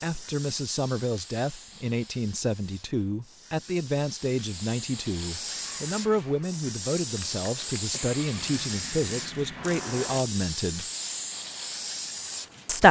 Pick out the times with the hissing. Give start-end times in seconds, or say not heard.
0.0-12.8.